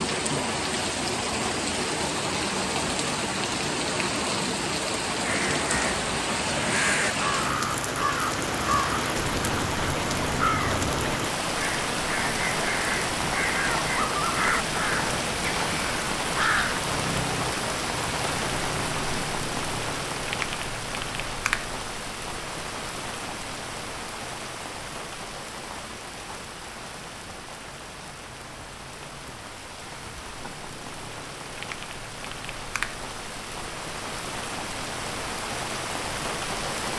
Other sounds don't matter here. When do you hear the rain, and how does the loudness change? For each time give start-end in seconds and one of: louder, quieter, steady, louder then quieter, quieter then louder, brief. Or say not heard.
0.0-36.9 quieter.